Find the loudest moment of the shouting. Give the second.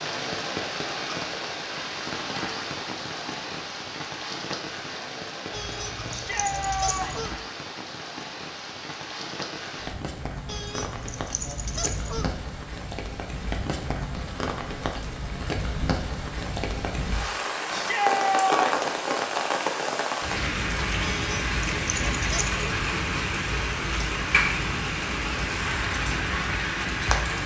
18 s.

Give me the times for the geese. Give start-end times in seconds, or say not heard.
5.5-7.4, 10.4-12.3, 21.0-22.6.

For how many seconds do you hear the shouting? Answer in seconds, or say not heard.
2 s.